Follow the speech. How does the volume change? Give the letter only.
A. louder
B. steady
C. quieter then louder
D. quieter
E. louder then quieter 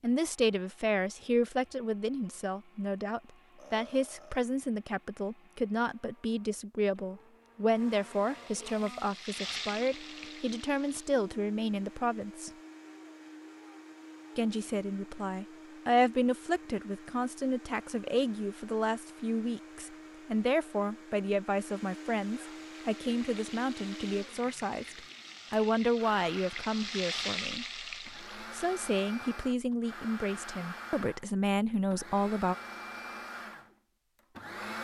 B.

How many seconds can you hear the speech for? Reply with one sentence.
The speech can be heard for 31 seconds in total.